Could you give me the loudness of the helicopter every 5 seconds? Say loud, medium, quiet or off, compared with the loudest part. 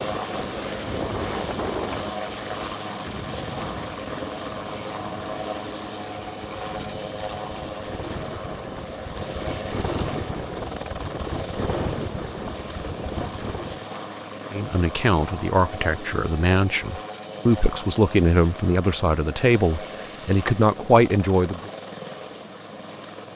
loud, loud, loud, medium, medium.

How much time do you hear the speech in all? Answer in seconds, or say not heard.
7 s.